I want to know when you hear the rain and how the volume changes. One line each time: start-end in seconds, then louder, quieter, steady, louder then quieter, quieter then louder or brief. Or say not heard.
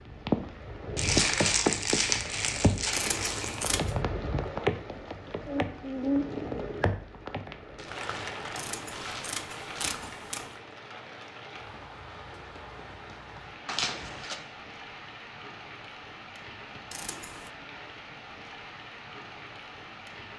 0.0-20.3 quieter.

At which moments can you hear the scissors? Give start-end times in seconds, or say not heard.
2.9-4.0, 8.6-10.6, 16.9-17.5.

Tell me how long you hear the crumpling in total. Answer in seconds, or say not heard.
6 s.